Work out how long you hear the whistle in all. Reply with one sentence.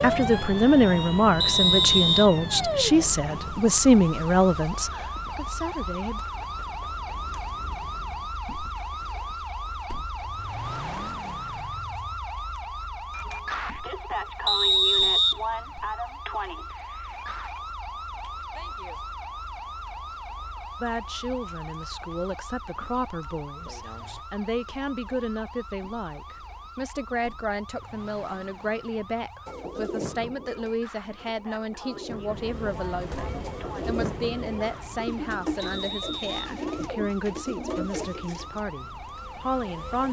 You can hear the whistle for 3 seconds altogether.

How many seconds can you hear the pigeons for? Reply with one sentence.
You can hear the pigeons for 9 seconds altogether.